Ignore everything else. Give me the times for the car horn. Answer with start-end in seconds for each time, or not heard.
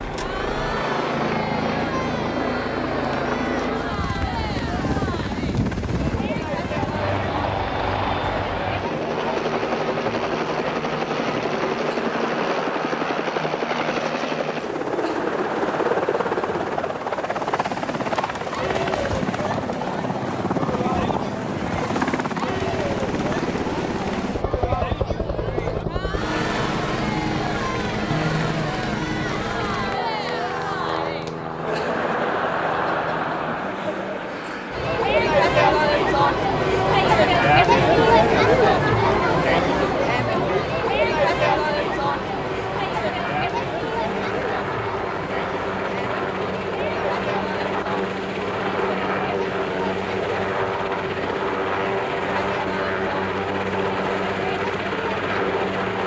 28.1-28.8.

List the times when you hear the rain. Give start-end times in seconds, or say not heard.
not heard.